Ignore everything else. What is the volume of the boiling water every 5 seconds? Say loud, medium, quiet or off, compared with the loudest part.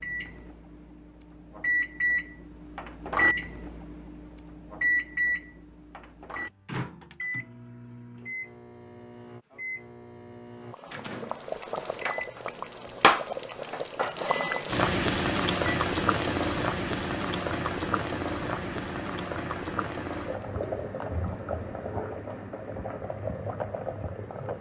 off, off, loud, loud, medium.